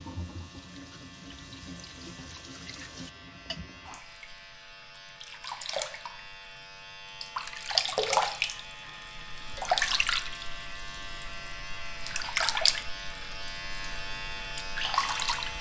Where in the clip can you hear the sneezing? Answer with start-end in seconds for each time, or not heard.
not heard.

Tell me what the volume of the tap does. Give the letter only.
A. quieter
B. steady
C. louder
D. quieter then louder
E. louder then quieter
C.